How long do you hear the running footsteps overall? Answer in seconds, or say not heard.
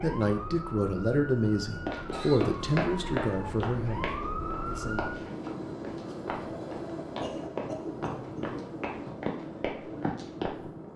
9 s.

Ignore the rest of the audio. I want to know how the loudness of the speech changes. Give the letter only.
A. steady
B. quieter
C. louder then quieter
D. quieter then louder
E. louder
B.